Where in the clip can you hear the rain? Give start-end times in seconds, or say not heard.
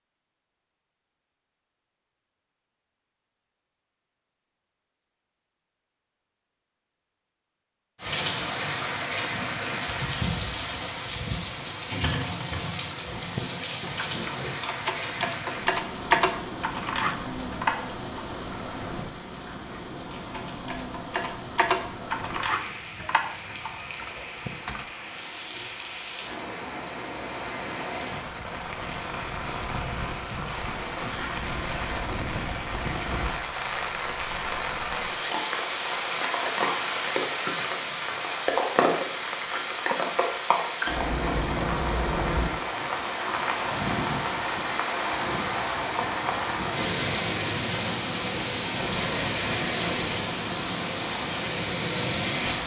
8.0-52.6.